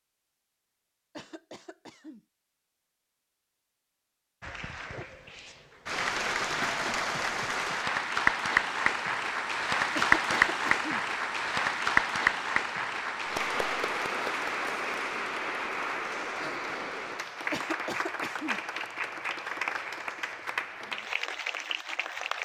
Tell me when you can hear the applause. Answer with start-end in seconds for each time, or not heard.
4.4-22.4.